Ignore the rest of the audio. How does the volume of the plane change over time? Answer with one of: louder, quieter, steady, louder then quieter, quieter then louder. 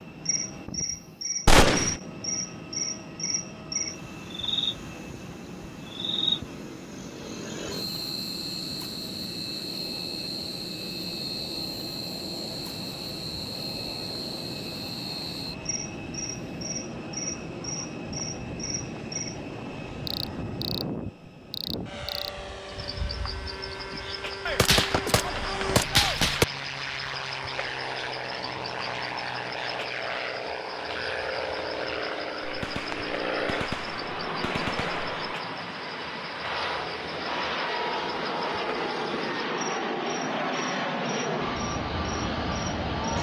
louder.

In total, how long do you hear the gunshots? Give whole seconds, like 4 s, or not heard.
5 s.